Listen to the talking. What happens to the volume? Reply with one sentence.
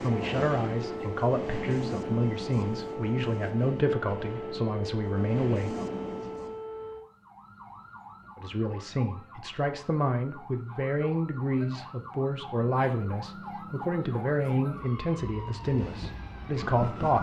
The volume of the talking stays about the same.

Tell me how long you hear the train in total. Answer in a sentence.
You can hear the train for 8 seconds altogether.